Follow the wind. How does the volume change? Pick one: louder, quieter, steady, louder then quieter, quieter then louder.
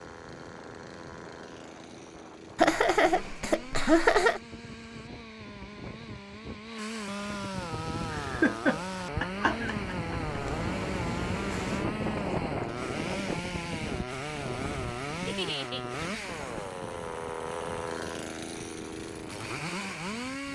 louder then quieter.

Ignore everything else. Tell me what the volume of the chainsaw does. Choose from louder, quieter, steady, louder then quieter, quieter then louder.
louder.